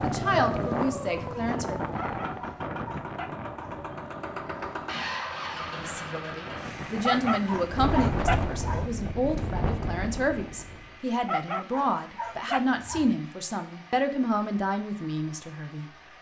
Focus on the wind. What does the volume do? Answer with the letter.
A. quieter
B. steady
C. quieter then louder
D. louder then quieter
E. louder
C.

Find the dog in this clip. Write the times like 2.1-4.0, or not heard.
1.9-3.9, 7.0-8.9, 11.2-13.2.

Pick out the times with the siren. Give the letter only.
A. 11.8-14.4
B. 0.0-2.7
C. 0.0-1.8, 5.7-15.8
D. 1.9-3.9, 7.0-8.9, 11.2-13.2
B.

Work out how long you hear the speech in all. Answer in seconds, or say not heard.
12 s.